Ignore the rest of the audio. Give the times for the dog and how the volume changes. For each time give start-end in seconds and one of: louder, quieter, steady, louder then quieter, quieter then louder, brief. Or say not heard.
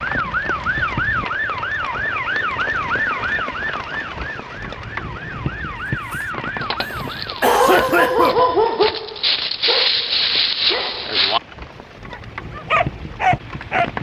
6.1-11.4 louder
12.1-13.9 brief.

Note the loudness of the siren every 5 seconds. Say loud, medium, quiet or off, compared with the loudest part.
loud, medium, off.